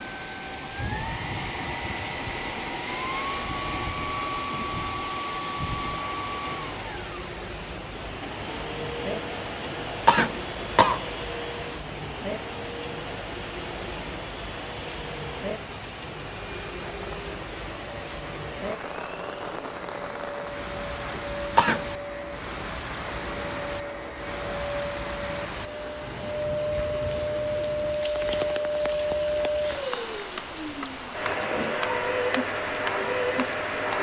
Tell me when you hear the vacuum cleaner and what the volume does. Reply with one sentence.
You can hear the vacuum cleaner from 0.0 to 33.9 s, getting quieter then louder.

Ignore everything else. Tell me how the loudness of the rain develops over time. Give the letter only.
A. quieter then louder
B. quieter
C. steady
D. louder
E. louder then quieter
C.